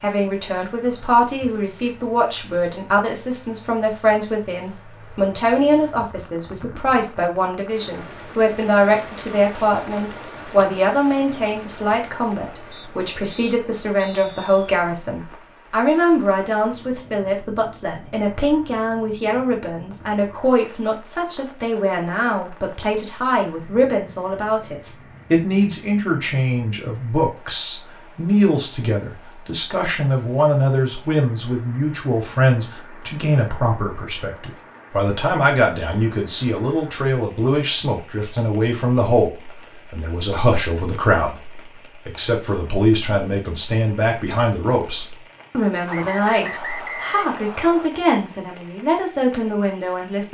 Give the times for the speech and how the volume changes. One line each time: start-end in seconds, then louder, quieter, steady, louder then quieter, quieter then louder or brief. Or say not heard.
0.0-50.2 steady.